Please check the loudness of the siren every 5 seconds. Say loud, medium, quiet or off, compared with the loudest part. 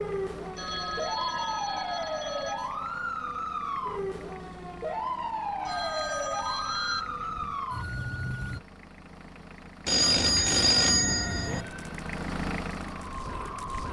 loud, loud, medium.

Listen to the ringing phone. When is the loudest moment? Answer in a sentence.
The volume of the ringing phone peaks at 11 seconds.